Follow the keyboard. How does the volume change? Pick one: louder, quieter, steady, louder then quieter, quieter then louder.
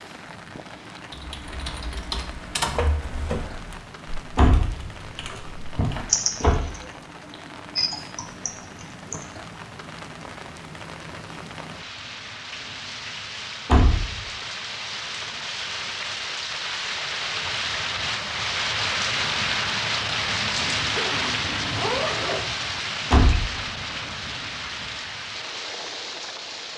quieter then louder.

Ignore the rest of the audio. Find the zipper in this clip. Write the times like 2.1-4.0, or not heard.
20.9-22.4.